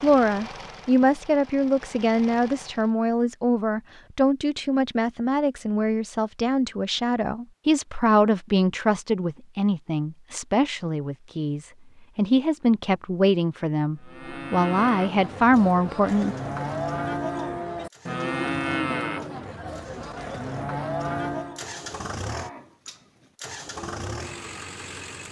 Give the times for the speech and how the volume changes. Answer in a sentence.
You can hear the speech from 0.0 to 16.4 s, at a steady volume.